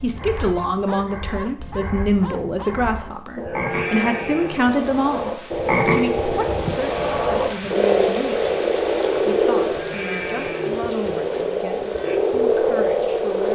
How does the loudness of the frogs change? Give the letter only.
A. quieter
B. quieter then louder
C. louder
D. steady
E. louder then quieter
C.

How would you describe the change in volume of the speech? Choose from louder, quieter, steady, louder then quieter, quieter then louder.
quieter.